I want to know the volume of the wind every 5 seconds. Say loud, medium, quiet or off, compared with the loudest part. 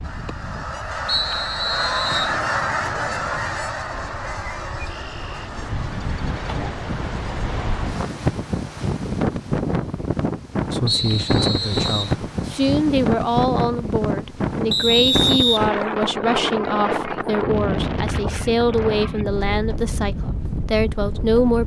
quiet, loud, loud, loud, medium.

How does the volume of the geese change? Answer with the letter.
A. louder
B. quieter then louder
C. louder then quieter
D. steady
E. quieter
C.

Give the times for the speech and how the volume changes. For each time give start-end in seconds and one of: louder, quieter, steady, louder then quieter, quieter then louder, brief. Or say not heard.
10.7-21.6 steady.